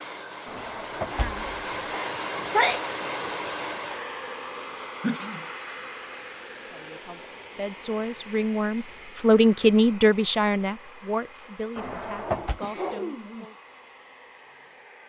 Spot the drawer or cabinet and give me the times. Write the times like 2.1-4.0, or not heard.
0.5-1.9, 11.8-12.6.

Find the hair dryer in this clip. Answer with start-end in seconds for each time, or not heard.
0.0-15.0.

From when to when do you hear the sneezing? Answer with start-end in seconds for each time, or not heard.
1.9-2.8, 5.0-5.5, 12.4-13.4.